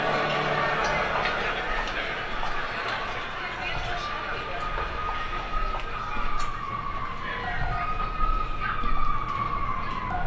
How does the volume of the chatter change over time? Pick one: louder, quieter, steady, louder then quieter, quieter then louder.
quieter.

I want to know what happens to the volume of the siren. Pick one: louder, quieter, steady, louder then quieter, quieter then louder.
louder.